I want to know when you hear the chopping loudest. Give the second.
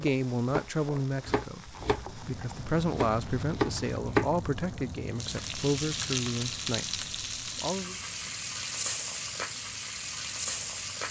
4 s.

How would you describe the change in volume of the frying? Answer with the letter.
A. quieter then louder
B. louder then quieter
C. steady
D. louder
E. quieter
D.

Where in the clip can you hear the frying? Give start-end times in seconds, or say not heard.
0.0-11.0.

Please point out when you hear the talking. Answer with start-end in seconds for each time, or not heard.
0.0-8.0.